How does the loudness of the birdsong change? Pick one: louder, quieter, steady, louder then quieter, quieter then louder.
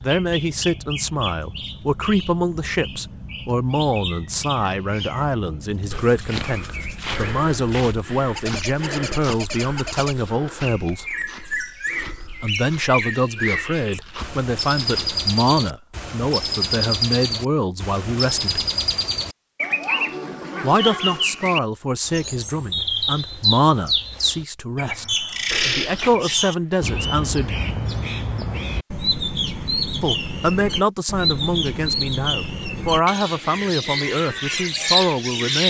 louder.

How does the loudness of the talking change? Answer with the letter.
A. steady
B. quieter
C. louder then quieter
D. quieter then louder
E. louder
A.